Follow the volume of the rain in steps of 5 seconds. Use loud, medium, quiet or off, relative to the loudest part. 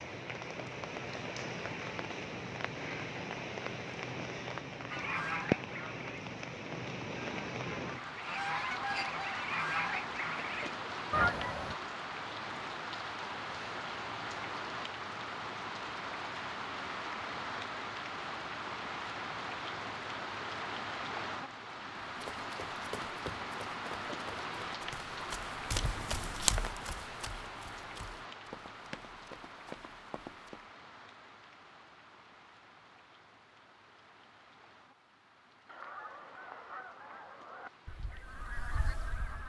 loud, loud, loud, loud, loud, medium, quiet, quiet.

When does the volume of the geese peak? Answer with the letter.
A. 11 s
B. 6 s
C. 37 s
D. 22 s
A.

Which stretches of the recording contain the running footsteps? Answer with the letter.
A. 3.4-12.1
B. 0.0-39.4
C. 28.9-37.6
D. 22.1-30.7
D.